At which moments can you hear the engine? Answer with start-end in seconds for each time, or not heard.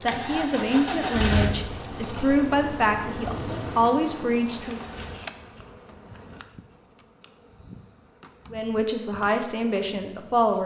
0.0-5.2.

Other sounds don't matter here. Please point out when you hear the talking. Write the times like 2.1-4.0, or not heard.
0.0-4.8, 8.5-10.6.